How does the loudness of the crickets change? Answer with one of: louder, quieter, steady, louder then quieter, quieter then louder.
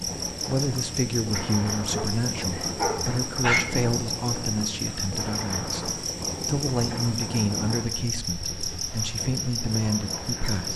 steady.